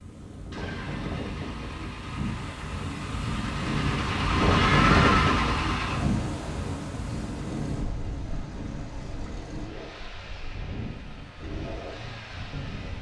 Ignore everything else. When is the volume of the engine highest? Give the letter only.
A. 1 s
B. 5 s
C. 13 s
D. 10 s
B.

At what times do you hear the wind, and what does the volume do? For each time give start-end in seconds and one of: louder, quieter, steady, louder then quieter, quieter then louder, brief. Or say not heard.
0.0-12.9 louder then quieter.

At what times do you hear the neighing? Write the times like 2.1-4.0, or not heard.
4.5-5.3.